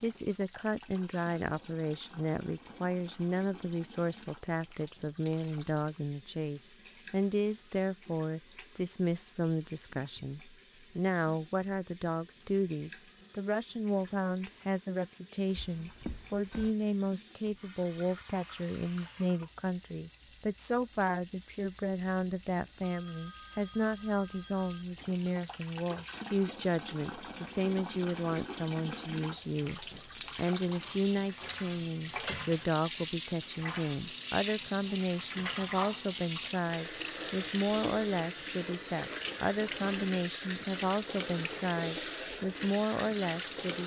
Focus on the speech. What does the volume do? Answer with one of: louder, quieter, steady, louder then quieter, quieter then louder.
steady.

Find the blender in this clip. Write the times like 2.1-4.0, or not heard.
not heard.